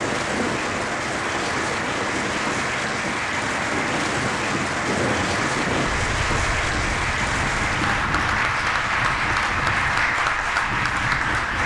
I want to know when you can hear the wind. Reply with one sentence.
You can hear the wind from 0.0 to 11.6 s.